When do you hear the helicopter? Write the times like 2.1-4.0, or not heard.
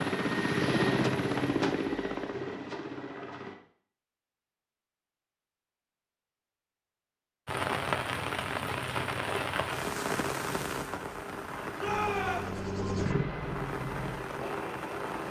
0.0-3.5, 11.8-15.2.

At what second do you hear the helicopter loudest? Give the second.
1 s.